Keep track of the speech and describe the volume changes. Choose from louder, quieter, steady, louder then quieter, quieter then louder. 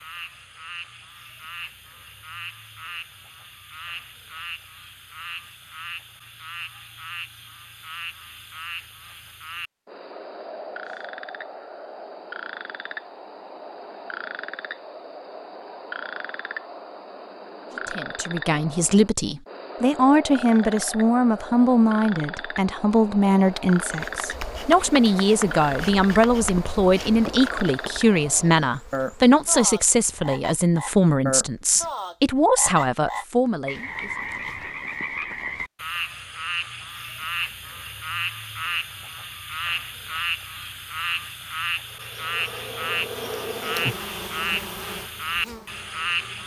steady.